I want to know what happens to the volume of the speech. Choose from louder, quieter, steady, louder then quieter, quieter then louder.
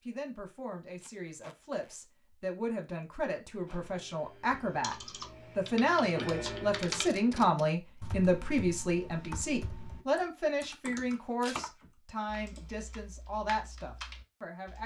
louder then quieter.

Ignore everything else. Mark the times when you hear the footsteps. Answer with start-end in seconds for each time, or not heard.
not heard.